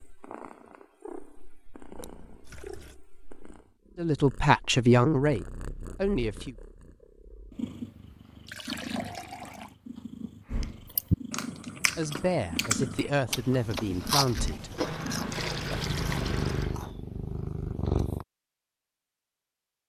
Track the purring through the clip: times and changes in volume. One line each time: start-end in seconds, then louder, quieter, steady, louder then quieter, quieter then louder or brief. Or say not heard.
0.0-18.2 louder.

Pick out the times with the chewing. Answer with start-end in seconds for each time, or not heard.
10.9-16.9.